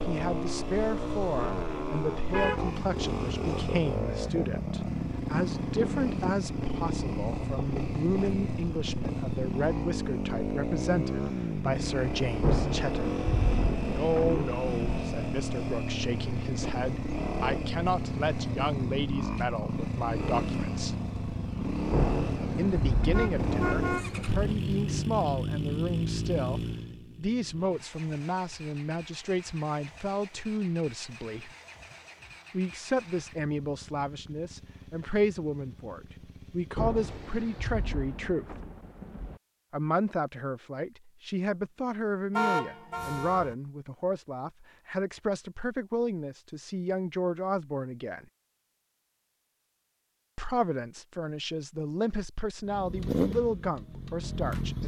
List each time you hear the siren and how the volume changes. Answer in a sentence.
The siren can't be heard in this clip.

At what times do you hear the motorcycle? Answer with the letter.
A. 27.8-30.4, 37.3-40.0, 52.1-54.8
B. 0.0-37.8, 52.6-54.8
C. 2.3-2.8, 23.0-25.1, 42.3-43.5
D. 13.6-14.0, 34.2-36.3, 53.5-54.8
B.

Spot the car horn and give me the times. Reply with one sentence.
You can hear the car horn from 2.3 to 2.8 s, from 23.0 to 25.1 s and from 42.3 to 43.5 s.